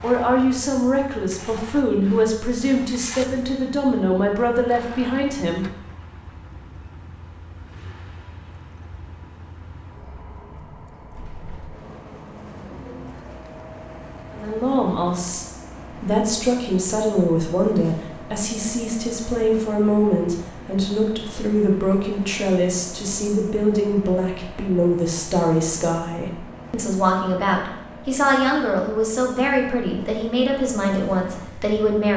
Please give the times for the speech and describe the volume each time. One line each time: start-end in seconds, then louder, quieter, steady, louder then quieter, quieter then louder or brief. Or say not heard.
0.0-5.7 steady
14.3-32.1 steady.